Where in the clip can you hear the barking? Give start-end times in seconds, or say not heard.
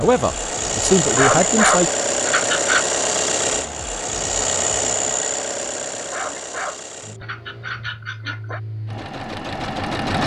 1.1-2.9, 6.0-8.6.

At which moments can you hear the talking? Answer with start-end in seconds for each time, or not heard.
0.0-1.9.